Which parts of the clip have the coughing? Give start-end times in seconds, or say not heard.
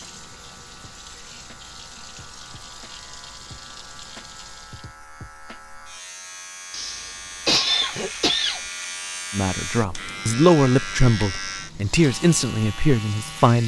6.7-8.6.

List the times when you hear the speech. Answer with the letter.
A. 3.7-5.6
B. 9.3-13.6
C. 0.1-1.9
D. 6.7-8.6
B.